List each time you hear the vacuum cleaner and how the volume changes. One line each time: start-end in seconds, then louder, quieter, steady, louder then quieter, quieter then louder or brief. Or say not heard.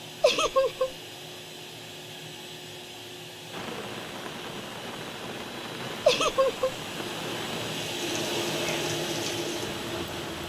0.0-10.4 louder.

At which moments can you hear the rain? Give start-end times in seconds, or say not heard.
3.5-10.4.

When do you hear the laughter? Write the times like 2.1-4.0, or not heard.
0.2-0.9, 6.0-6.8.